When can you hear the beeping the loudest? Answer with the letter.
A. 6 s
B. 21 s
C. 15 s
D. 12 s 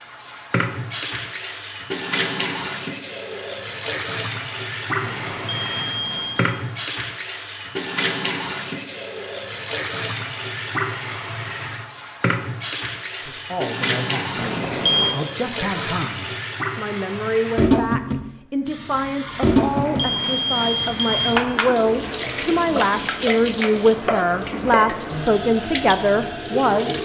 C.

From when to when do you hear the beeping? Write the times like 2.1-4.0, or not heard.
5.0-6.5, 14.3-15.2, 19.5-21.4.